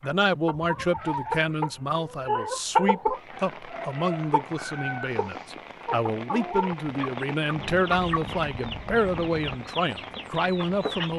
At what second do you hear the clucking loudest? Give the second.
3 s.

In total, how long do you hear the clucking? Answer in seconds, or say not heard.
11 s.